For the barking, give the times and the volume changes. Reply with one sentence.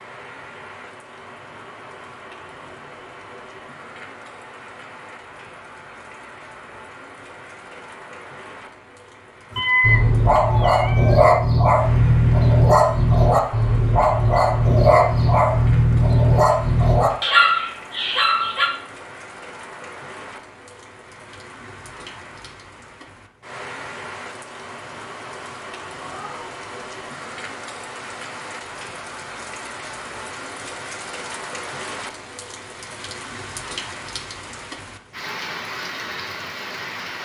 You can hear the barking from 9.6 to 18.7 s, at a steady volume.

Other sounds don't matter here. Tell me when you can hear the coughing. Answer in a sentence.
The coughing can't be heard in this clip.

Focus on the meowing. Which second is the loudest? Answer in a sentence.
The loudest moment of the meowing is at 10 seconds.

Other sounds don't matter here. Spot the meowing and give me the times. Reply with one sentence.
The meowing can be heard from 9.6 to 11.2 s and from 26.0 to 26.5 s.